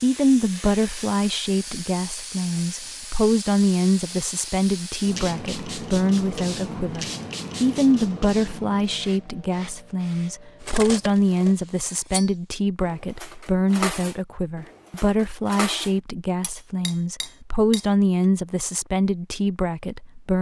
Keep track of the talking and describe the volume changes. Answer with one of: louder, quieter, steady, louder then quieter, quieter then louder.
steady.